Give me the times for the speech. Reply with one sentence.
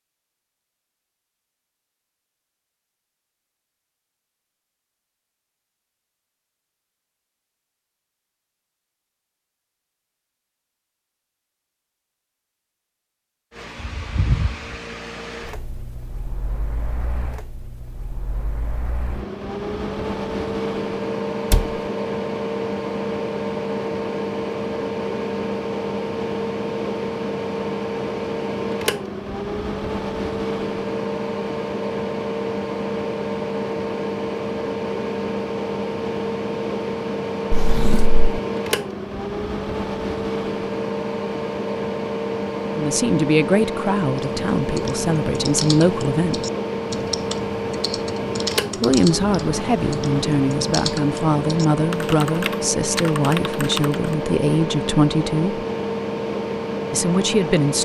The speech can be heard from 42.8 to 46.4 s, from 48.8 to 55.6 s and from 56.9 to 57.7 s.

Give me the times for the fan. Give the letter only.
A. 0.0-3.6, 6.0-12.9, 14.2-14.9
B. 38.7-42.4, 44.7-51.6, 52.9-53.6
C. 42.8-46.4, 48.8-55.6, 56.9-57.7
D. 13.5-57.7
D.